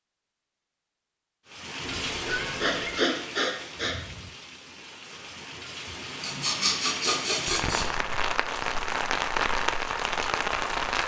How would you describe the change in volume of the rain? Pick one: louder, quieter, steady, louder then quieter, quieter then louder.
quieter then louder.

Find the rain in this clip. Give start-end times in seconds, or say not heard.
1.4-11.0.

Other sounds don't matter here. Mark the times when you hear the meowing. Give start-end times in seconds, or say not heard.
1.9-3.0.